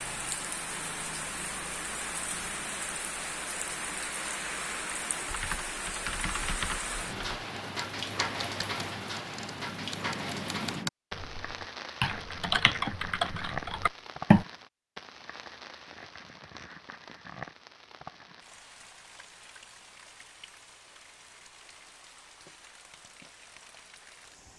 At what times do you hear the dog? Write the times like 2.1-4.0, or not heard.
not heard.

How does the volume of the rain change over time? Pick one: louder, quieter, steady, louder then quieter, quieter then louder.
quieter.